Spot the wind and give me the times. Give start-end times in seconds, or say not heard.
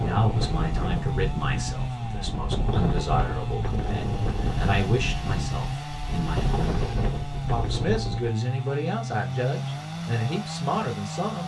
0.0-8.3.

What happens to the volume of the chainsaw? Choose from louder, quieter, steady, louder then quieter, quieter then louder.
steady.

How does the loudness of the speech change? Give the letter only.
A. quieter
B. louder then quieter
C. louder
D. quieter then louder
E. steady
E.